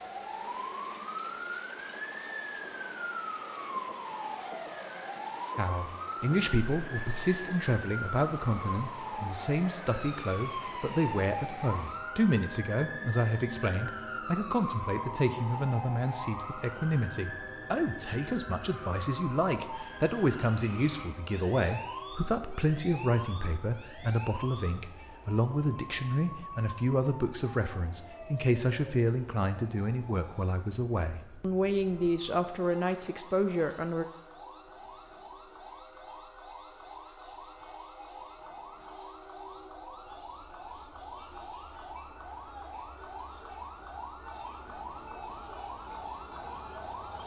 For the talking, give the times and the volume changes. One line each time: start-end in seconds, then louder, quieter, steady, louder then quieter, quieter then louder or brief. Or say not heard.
5.5-34.0 steady.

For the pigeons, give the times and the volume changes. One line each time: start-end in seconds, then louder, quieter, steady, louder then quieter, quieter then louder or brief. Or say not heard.
not heard.